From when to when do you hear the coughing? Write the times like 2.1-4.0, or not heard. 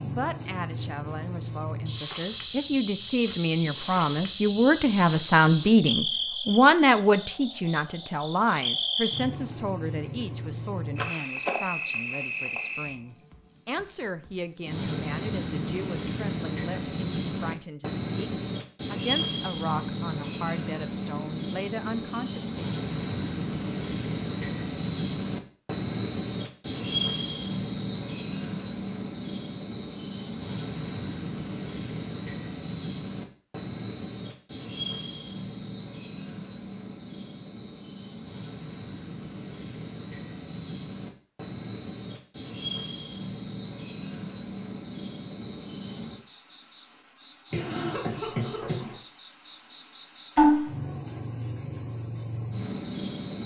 47.5-49.0.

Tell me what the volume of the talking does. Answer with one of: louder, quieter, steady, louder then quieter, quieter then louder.
louder then quieter.